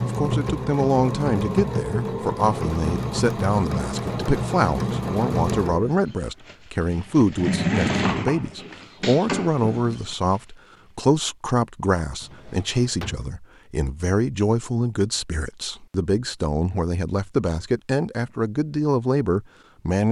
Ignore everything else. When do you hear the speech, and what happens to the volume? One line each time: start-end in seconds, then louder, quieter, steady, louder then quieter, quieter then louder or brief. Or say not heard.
0.0-20.0 steady.